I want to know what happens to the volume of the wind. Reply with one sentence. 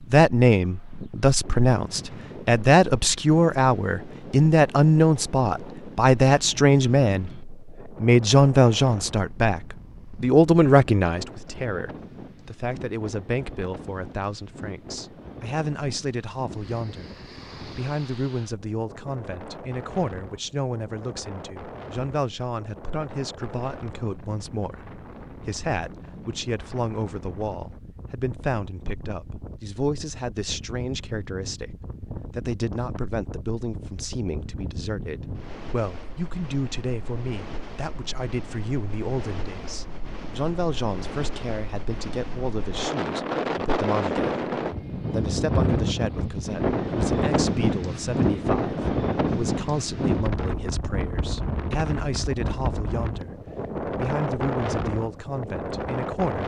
The volume of the wind goes up.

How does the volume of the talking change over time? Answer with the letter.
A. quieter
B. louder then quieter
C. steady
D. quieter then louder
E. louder
A.